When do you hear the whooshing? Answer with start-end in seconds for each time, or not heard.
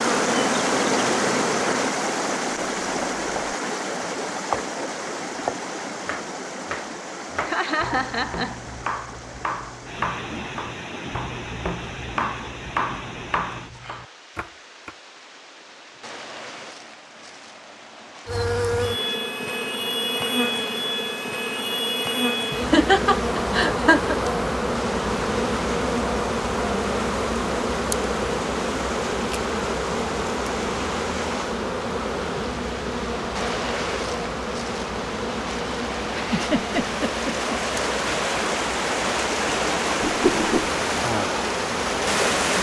40.0-40.7.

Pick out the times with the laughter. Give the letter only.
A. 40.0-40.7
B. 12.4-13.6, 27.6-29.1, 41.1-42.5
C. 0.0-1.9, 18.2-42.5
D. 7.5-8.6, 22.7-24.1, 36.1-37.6
D.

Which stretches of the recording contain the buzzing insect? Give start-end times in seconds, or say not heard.
0.0-1.9, 18.2-42.5.